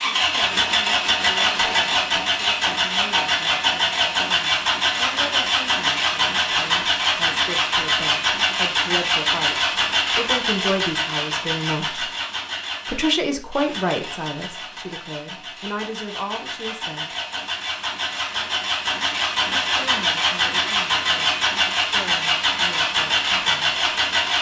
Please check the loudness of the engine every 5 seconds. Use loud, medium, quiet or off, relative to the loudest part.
loud, loud, medium, medium, loud.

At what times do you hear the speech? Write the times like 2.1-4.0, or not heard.
0.2-12.1, 12.8-17.1, 19.4-23.8.